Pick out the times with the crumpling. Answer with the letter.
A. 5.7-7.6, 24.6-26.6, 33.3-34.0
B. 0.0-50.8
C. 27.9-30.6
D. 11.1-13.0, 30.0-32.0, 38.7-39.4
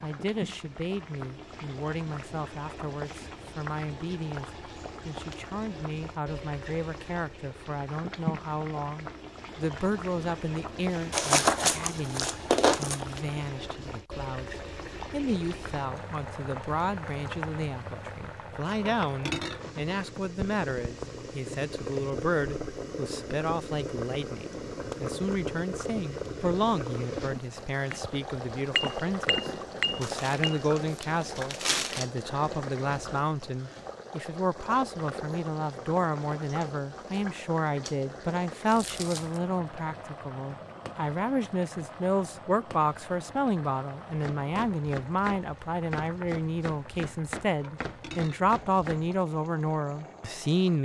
D.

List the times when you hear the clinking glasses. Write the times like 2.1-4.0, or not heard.
27.9-30.6.